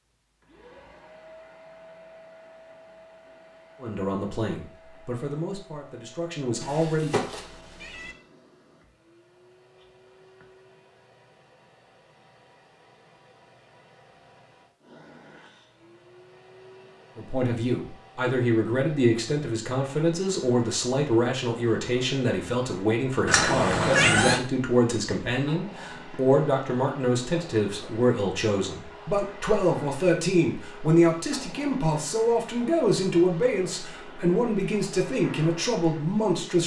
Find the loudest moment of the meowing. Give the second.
24 s.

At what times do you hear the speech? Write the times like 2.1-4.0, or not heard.
3.8-7.2, 17.1-36.6.